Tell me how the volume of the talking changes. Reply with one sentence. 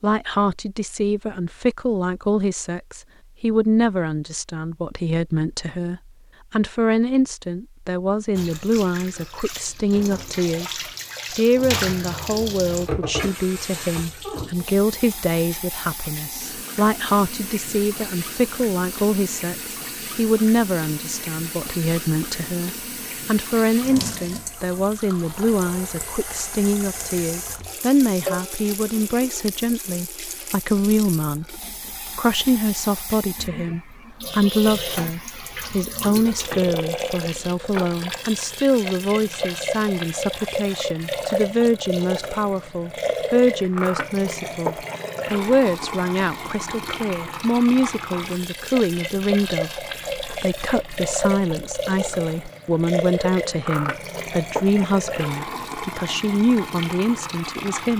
The loudness of the talking stays about the same.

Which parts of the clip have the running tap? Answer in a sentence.
The running tap can be heard from 8.3 to 57.9 s.